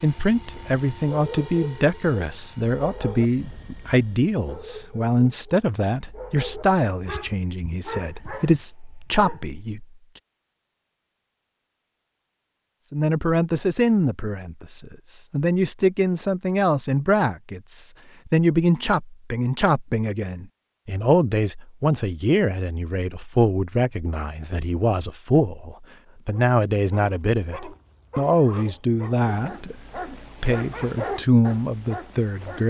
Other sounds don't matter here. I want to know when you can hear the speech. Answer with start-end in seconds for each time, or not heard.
0.0-9.8, 12.9-32.6.